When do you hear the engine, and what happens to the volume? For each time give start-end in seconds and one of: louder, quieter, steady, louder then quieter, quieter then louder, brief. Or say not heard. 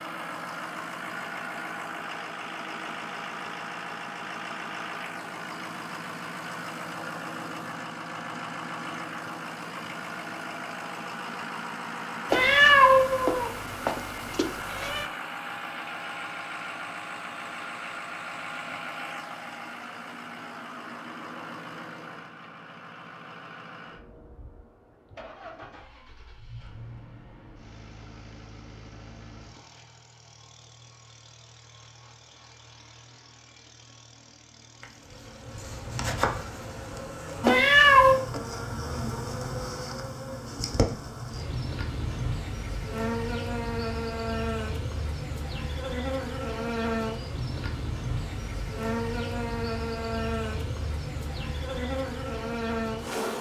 0.0-37.1 quieter.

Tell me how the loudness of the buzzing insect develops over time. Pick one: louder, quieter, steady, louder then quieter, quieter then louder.
steady.